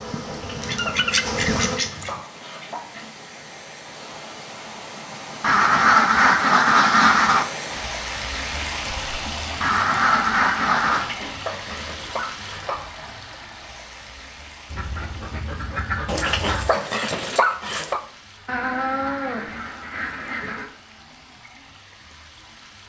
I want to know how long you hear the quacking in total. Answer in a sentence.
The quacking can be heard for 9 seconds in total.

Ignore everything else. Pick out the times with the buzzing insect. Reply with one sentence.
The buzzing insect can be heard from 0.0 to 1.8 s.